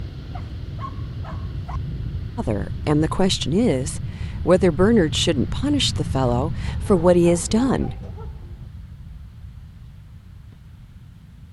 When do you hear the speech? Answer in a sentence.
You can hear the speech from 2.4 to 8.0 s.